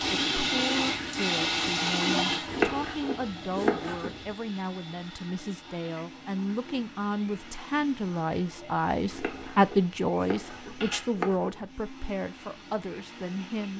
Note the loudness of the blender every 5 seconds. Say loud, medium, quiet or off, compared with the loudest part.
loud, quiet, quiet.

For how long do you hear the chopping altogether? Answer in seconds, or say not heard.
4 s.